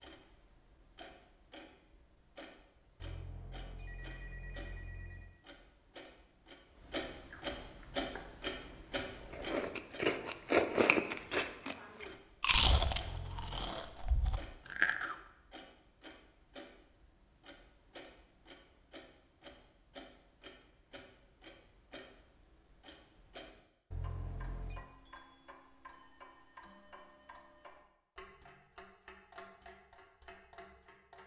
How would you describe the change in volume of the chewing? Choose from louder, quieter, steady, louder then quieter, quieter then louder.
louder then quieter.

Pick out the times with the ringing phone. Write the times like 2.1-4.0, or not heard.
3.0-5.3, 13.0-13.8, 23.9-24.9.